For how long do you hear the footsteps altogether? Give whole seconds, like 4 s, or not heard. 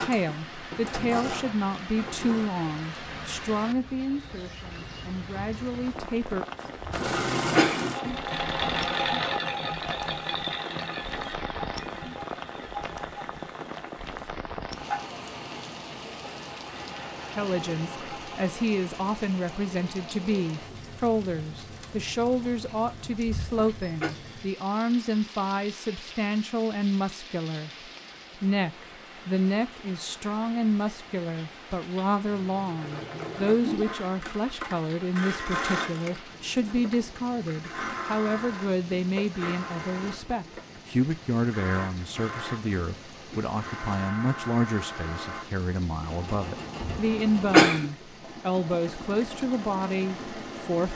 not heard.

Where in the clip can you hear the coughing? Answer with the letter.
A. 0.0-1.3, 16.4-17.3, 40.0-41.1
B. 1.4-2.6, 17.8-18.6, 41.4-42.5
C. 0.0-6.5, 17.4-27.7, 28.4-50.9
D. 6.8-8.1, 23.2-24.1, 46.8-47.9
D.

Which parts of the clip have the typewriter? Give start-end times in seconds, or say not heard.
not heard.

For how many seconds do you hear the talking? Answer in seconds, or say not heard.
39 s.